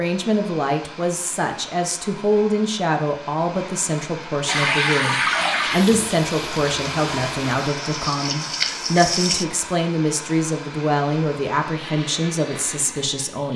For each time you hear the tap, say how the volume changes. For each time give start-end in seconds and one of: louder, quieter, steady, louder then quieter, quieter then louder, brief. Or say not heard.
4.5-9.4 quieter then louder.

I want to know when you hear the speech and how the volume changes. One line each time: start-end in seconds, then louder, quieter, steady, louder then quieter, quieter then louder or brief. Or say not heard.
0.0-13.5 steady.